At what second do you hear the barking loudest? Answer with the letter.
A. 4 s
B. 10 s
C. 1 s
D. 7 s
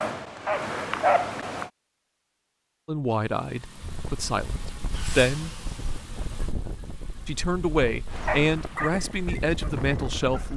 C.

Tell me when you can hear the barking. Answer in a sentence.
You can hear the barking from 0.0 to 1.7 s and from 8.1 to 10.5 s.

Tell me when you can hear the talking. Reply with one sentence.
You can hear the talking from 2.9 to 5.5 s and from 7.2 to 10.5 s.